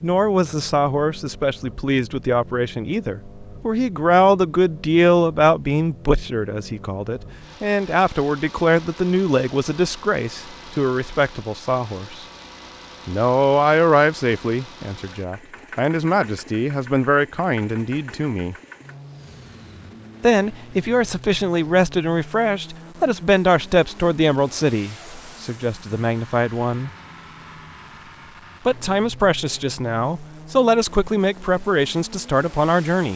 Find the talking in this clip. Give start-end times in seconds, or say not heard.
0.0-12.2, 13.1-18.6, 20.2-26.9, 28.6-33.1.